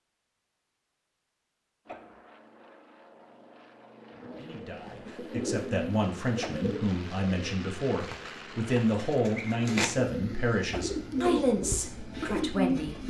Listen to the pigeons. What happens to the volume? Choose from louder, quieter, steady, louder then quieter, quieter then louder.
quieter then louder.